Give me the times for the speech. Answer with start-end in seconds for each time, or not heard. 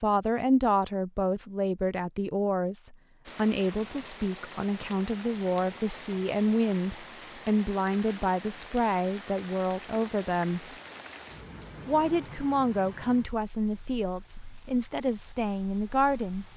0.0-10.7, 11.8-16.4.